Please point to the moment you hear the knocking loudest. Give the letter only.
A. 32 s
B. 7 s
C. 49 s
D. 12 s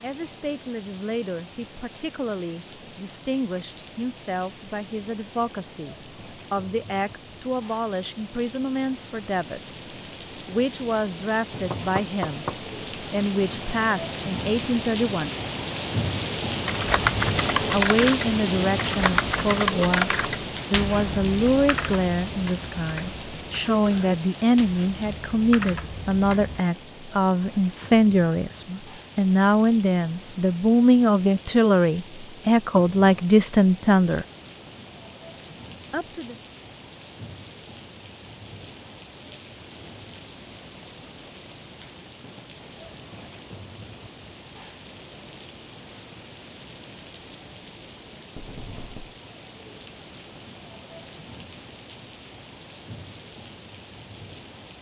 D.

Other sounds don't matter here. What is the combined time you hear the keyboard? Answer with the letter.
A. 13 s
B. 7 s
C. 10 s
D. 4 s
C.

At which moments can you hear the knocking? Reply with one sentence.
You can hear the knocking from 11.7 to 12.6 s and from 48.4 to 49.1 s.